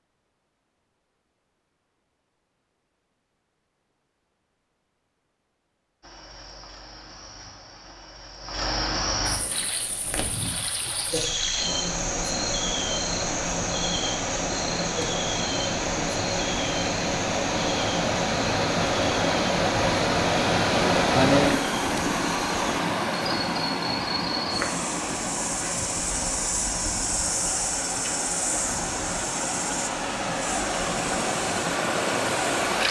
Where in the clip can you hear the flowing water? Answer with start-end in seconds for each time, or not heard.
9.5-32.8.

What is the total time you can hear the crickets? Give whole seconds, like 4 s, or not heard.
27 s.